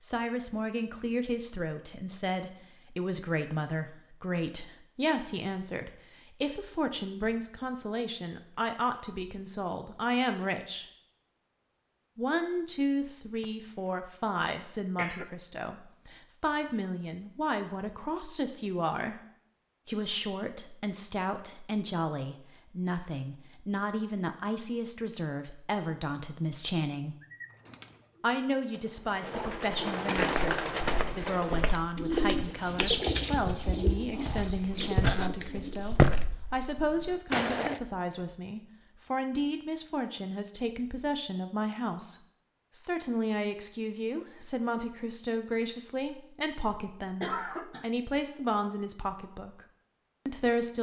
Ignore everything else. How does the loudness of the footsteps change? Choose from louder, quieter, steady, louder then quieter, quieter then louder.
louder then quieter.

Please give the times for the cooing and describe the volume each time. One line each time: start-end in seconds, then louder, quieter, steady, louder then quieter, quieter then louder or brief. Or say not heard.
27.1-36.1 louder then quieter.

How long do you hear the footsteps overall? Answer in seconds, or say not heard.
8 s.